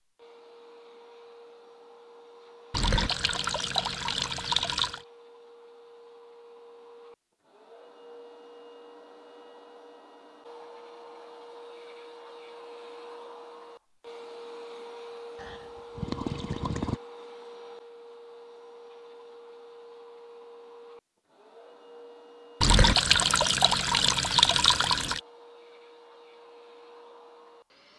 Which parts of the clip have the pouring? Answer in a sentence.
The pouring can be heard from 2.7 to 5.0 s, from 15.3 to 17.0 s and from 22.6 to 25.2 s.